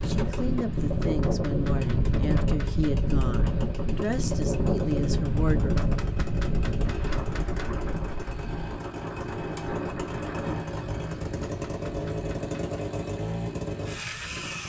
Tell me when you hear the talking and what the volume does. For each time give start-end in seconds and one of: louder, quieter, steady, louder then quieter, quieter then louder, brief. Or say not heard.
0.1-5.8 steady.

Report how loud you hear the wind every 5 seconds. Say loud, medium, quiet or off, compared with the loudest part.
loud, loud, medium.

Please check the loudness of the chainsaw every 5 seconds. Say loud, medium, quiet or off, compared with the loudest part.
medium, medium, loud.